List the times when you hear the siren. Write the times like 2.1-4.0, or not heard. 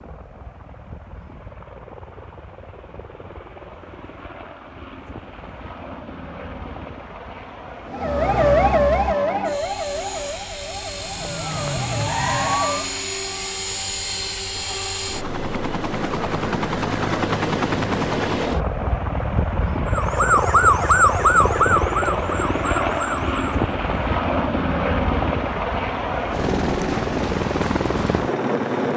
7.9-12.8, 19.9-23.6.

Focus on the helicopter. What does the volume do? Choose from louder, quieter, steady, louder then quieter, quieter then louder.
louder.